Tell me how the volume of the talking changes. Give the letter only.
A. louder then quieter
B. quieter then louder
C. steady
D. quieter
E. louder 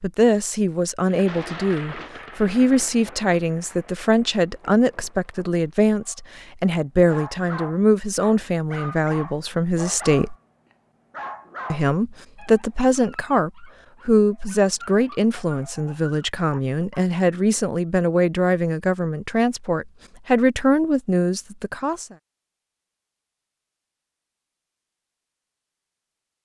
C.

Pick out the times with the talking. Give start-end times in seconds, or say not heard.
0.0-10.3, 11.7-22.1.